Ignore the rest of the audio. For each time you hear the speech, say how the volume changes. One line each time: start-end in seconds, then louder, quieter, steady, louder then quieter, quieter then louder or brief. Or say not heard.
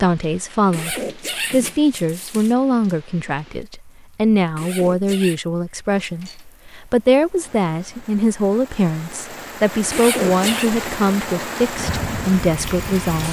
0.0-13.2 steady.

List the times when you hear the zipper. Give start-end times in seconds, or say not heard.
0.7-2.5, 4.5-5.4, 9.9-10.7.